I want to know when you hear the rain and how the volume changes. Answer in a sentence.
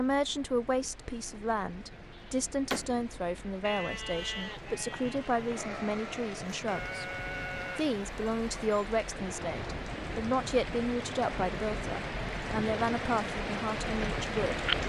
The rain can be heard from 0.0 to 14.8 s, getting louder.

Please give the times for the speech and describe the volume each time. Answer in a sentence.
You can hear the speech from 0.0 to 14.7 s, at a steady volume.